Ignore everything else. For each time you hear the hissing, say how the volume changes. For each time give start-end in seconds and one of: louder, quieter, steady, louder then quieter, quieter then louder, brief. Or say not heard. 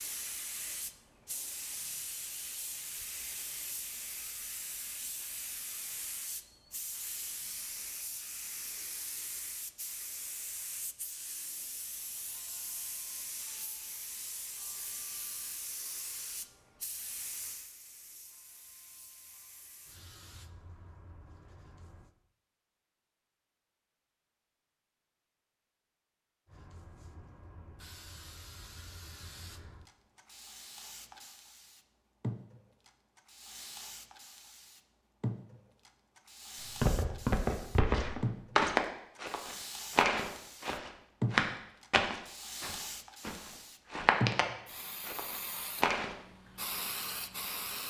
0.0-22.1 quieter
26.4-47.8 louder.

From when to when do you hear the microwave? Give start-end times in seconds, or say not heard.
not heard.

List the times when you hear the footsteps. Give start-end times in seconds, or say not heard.
36.8-46.2.